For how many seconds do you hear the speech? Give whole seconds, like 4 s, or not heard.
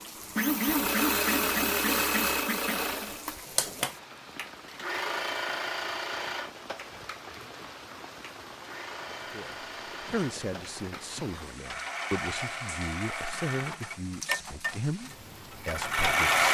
7 s.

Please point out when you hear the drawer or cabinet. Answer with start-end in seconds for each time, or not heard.
not heard.